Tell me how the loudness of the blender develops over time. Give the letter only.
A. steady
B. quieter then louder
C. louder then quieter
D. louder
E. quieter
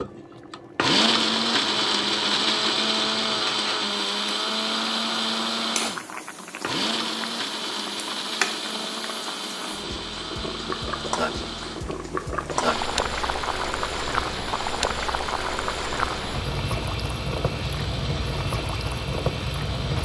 E.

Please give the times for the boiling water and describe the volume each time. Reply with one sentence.
The boiling water can be heard from 0.0 to 20.0 s, getting louder.